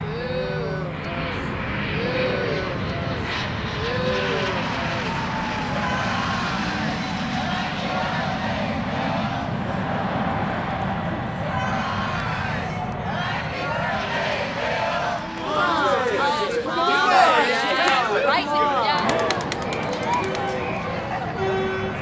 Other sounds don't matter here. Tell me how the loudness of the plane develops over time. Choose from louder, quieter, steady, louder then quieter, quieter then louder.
quieter.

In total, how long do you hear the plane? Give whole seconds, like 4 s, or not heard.
22 s.